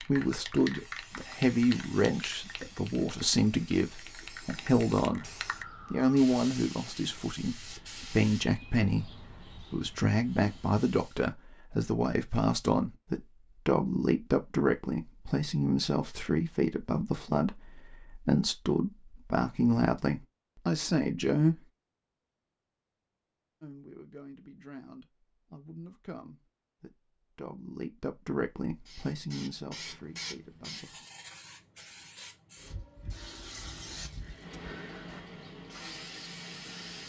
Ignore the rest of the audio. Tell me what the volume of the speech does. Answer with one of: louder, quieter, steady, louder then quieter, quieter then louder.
quieter.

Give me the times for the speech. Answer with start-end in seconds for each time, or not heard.
0.0-5.3, 5.9-21.6, 23.6-31.1.